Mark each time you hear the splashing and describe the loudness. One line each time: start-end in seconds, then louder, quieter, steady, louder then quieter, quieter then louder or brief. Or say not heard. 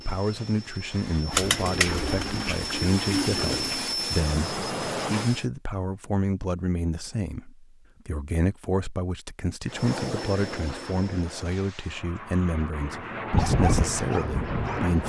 not heard.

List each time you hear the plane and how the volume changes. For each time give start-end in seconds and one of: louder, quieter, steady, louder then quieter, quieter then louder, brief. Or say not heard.
0.0-5.5 louder
9.7-15.0 quieter then louder.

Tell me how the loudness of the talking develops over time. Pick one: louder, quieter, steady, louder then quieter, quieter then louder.
steady.